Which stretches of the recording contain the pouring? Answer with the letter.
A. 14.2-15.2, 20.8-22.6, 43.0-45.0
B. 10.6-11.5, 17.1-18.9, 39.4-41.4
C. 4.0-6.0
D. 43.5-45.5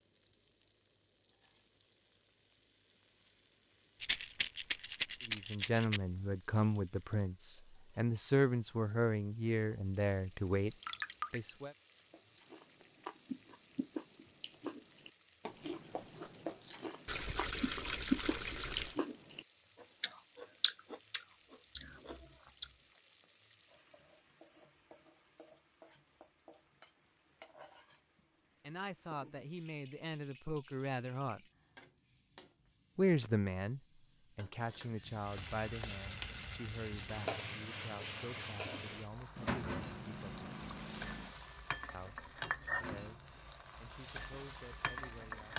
B.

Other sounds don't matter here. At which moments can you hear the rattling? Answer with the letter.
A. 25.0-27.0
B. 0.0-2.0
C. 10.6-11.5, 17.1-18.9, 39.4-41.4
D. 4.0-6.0
D.